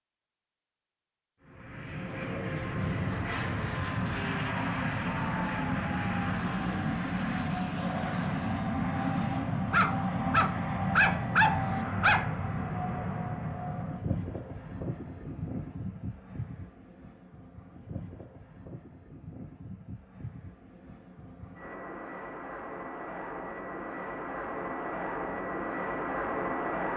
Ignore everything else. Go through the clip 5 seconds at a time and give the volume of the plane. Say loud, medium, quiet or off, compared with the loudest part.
loud, loud, loud, quiet, medium, loud.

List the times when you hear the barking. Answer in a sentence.
The barking can be heard from 9.7 to 12.3 s.